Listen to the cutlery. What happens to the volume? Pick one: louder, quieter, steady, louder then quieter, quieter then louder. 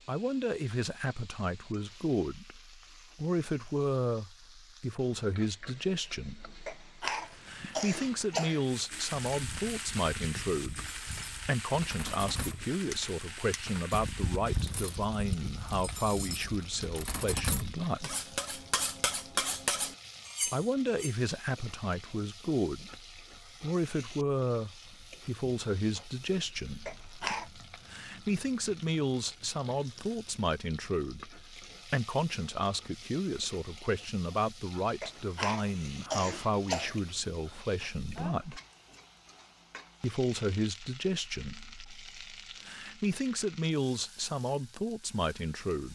louder.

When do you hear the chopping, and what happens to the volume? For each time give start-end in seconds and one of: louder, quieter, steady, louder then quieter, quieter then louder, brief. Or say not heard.
not heard.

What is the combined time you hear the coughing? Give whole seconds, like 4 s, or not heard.
5 s.